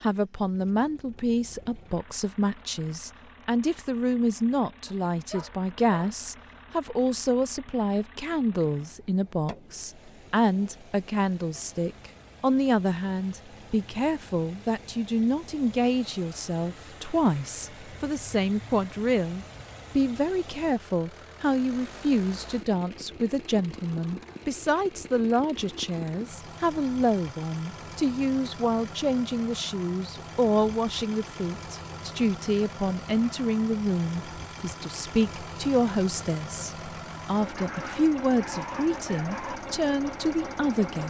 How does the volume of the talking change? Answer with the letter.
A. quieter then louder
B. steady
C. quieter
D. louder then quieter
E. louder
B.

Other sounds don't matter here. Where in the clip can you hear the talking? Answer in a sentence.
The talking can be heard from 0.0 to 41.0 s.